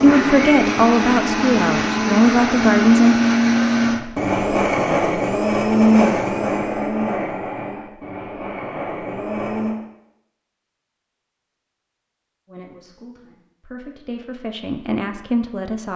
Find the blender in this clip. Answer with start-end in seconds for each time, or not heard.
0.0-9.8.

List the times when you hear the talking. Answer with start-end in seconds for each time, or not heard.
0.0-3.2, 12.4-15.9.